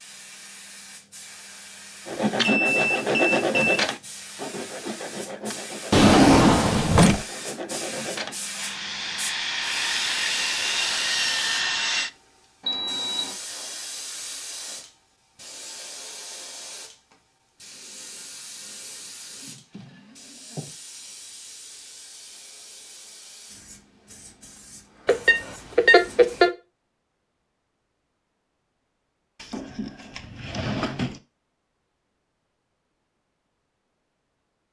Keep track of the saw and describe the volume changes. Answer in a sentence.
The volume of the saw goes down, then up.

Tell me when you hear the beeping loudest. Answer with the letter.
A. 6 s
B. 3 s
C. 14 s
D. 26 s
D.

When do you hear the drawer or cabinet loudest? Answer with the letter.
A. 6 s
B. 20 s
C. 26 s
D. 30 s
A.